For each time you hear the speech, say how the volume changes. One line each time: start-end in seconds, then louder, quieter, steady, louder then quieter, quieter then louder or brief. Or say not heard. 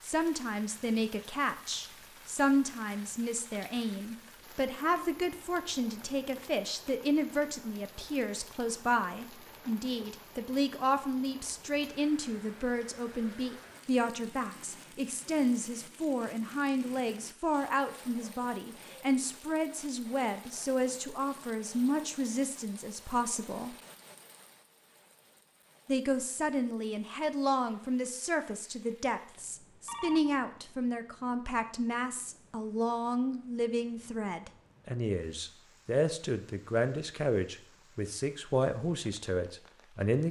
0.0-23.8 steady
25.9-40.2 steady.